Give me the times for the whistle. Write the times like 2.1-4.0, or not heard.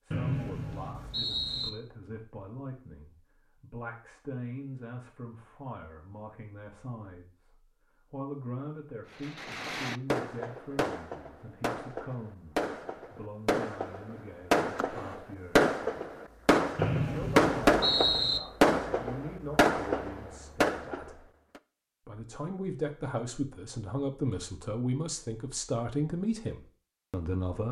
0.1-1.7, 16.8-18.4.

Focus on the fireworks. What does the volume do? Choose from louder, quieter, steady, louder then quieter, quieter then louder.
louder.